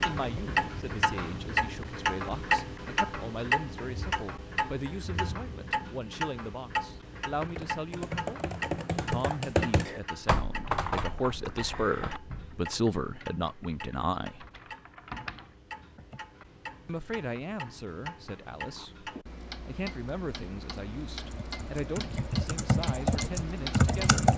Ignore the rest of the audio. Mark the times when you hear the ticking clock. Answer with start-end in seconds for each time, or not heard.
0.0-24.3.